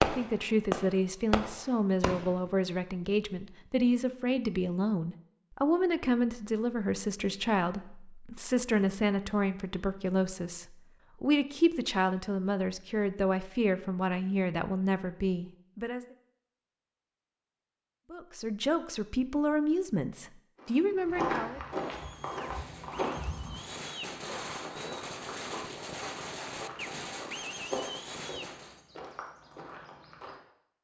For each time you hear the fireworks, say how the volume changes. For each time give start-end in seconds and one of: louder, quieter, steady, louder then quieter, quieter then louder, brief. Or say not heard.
0.0-2.5 brief
21.9-28.8 louder.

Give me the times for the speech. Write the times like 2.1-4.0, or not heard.
0.0-16.1, 18.1-21.6.